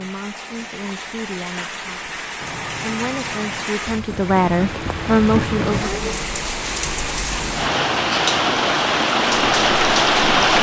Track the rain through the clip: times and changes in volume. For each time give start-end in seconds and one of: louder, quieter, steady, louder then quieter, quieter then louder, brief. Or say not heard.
0.0-10.5 louder.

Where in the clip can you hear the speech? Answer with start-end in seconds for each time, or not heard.
0.0-2.1, 2.8-6.0.